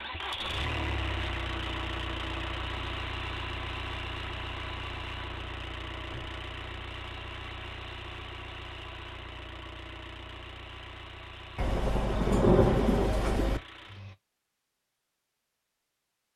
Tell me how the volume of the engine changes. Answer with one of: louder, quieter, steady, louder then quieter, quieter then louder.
quieter.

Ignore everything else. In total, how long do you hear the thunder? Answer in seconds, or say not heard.
2 s.